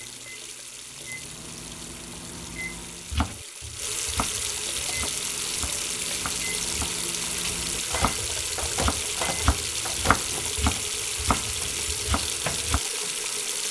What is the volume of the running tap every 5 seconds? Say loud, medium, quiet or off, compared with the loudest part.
medium, loud, loud.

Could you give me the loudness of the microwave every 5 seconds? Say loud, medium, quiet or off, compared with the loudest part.
medium, loud, loud.